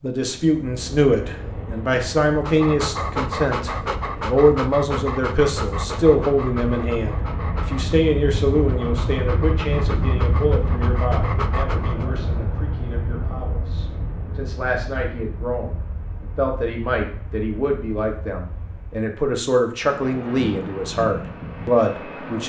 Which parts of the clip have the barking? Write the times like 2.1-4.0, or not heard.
2.2-12.1.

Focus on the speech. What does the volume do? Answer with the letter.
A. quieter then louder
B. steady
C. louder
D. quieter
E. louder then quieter
A.